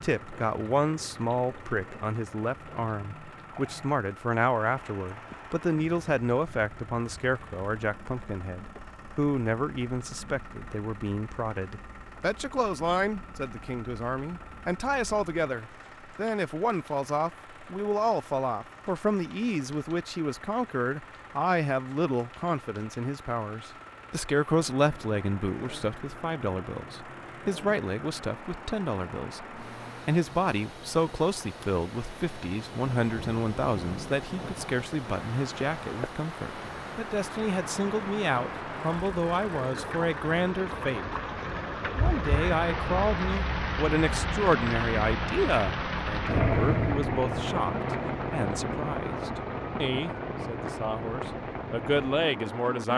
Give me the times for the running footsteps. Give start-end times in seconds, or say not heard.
not heard.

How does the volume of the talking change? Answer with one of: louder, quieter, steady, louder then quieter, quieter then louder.
steady.